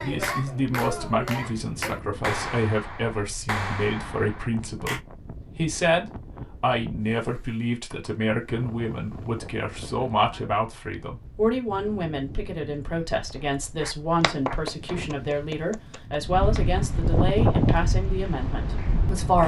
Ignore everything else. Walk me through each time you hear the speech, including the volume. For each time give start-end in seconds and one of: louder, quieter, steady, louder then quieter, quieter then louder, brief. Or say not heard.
0.0-19.4 steady.